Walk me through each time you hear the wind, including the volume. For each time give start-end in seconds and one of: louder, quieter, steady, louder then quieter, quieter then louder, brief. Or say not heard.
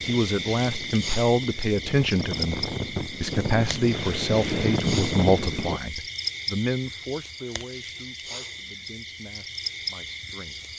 0.0-5.8 louder.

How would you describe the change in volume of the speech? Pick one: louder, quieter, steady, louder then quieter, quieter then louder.
quieter.